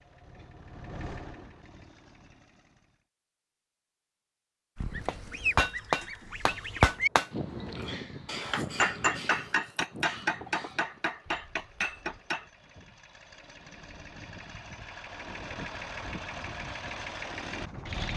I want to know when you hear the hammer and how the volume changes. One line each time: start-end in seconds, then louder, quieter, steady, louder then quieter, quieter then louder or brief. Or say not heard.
5.0-12.4 quieter.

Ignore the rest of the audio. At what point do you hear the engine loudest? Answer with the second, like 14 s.
18 s.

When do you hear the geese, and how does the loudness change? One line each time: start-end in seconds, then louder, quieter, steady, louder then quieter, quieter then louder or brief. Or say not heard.
4.8-12.0 quieter.